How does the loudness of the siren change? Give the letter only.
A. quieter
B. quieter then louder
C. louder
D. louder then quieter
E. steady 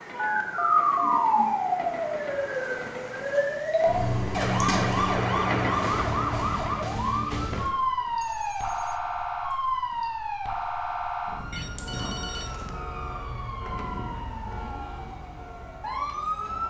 A.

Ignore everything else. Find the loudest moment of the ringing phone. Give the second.
1 s.